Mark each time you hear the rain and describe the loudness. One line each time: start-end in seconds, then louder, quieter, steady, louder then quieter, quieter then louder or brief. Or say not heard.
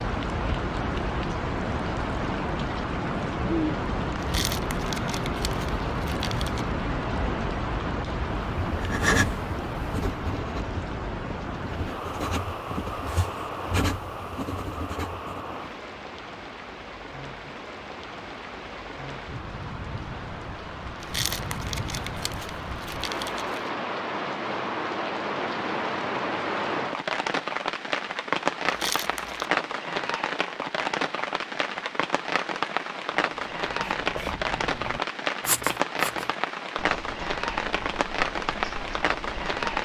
0.0-39.7 quieter then louder.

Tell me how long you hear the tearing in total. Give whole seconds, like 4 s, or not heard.
6 s.